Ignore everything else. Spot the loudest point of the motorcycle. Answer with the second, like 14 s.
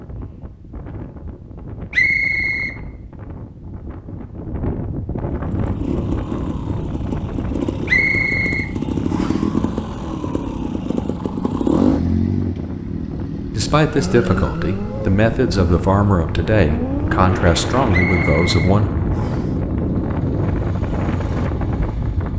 12 s.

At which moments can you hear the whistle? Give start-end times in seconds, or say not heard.
1.9-2.8, 7.8-9.4, 17.9-19.5.